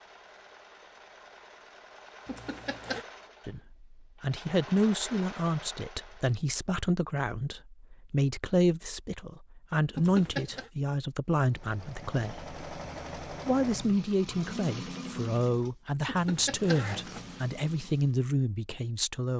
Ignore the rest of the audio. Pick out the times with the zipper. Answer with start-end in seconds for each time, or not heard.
2.2-3.0, 9.9-10.7, 16.1-17.4.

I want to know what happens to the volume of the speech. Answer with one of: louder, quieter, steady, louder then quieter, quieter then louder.
steady.